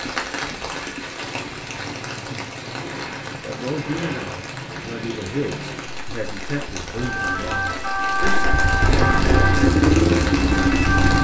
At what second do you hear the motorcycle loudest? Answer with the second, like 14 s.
10 s.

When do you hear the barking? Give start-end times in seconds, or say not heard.
not heard.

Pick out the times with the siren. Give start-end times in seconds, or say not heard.
7.0-11.2.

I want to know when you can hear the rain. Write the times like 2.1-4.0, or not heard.
0.0-11.2.